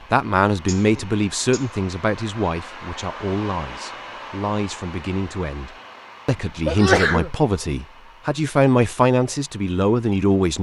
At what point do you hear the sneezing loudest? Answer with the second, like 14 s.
7 s.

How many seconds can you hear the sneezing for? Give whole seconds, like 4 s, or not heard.
2 s.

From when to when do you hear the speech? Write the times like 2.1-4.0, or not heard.
0.1-10.5.